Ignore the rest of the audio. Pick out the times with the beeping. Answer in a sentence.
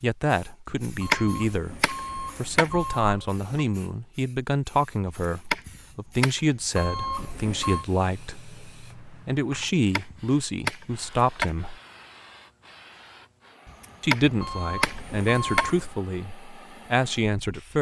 You can hear the beeping from 1.0 to 3.6 s, from 6.8 to 7.8 s and from 14.4 to 15.9 s.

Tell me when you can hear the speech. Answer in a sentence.
You can hear the speech from 0.0 to 11.8 s and from 14.0 to 17.7 s.